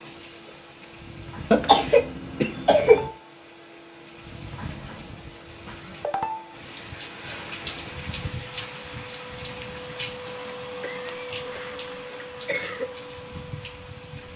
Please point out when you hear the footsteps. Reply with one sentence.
You can't hear the footsteps here.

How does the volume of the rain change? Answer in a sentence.
The volume of the rain goes up, then down.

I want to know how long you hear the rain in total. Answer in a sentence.
You can hear the rain for 14 seconds altogether.